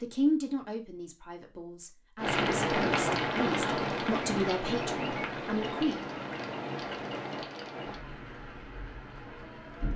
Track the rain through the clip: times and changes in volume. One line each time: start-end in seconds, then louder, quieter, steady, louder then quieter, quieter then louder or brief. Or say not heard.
2.1-9.9 quieter.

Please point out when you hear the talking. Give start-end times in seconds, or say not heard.
0.0-6.2.